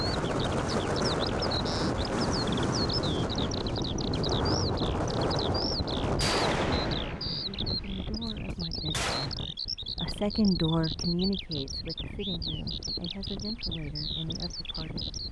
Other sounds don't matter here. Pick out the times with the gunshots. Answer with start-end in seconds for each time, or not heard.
6.2-9.3.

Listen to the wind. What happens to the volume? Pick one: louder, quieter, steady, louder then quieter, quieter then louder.
quieter.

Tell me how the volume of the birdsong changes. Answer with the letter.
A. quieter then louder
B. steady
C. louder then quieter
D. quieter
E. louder
B.